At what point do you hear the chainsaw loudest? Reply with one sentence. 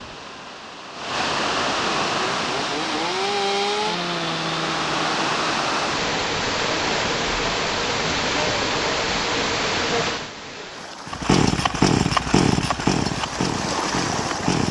The volume of the chainsaw peaks at 12 seconds.